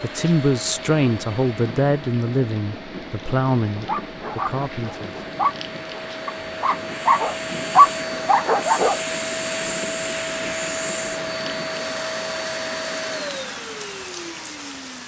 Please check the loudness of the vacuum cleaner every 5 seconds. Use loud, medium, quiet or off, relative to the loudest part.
medium, loud, loud.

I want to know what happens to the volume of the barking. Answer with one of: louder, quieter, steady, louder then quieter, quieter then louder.
louder.